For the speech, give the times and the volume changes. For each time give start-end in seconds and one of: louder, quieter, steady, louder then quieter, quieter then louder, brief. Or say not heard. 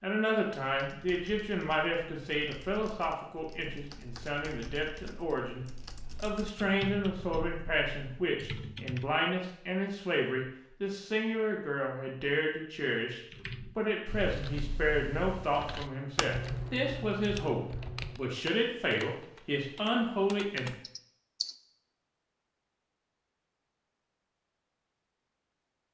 0.0-20.8 steady.